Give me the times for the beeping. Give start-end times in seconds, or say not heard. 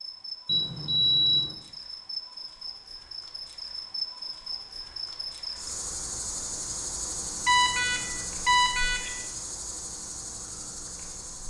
0.5-1.6, 7.5-9.1.